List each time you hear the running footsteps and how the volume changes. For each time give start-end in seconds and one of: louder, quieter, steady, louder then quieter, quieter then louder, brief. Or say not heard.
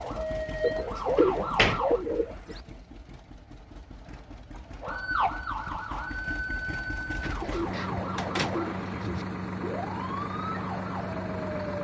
not heard.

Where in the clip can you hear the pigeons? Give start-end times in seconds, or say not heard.
0.6-2.5, 7.2-9.2.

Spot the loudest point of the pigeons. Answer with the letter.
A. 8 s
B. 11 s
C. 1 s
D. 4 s
C.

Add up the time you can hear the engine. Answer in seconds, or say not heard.
12 s.